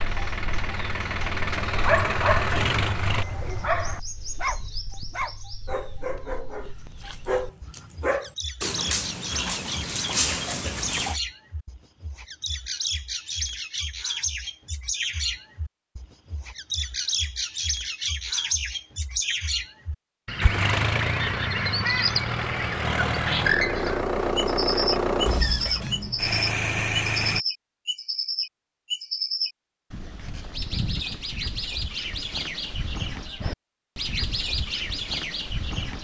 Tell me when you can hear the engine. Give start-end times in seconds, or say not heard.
0.0-3.2, 20.4-27.4.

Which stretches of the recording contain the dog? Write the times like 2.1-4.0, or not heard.
1.8-11.2.